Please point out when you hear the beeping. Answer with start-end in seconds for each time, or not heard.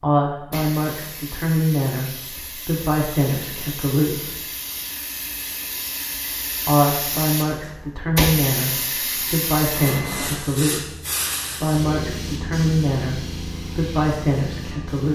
9.8-10.4.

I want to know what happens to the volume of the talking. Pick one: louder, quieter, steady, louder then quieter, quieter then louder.
steady.